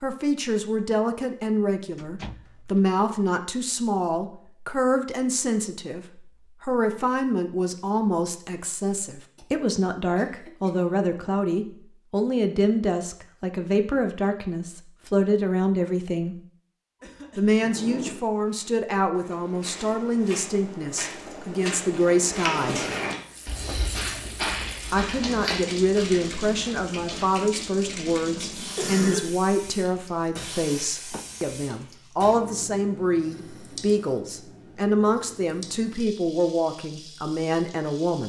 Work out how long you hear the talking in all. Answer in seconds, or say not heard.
35 s.